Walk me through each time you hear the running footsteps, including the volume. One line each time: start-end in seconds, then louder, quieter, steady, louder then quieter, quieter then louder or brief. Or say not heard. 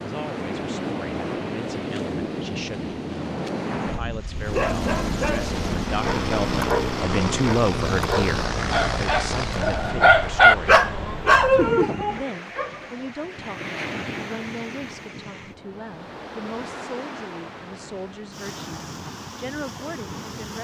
not heard.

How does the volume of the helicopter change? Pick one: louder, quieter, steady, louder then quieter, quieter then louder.
steady.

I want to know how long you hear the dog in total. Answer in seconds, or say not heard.
9 s.